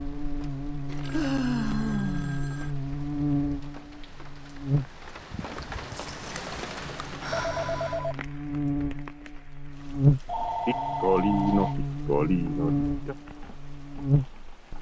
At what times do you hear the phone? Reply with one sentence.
You can hear the phone from 0.8 to 2.8 s, from 7.3 to 8.2 s and from 10.2 to 11.8 s.